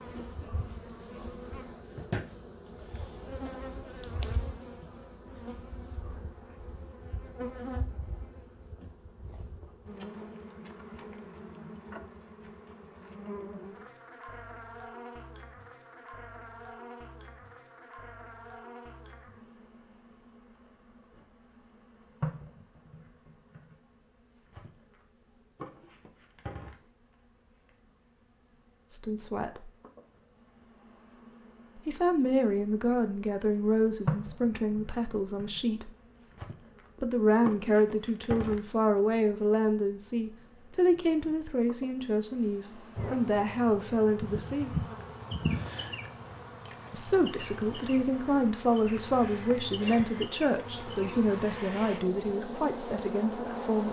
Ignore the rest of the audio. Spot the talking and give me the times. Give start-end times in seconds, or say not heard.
28.9-29.7, 31.9-35.9, 37.0-44.8, 46.9-53.8.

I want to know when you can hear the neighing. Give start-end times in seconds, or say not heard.
not heard.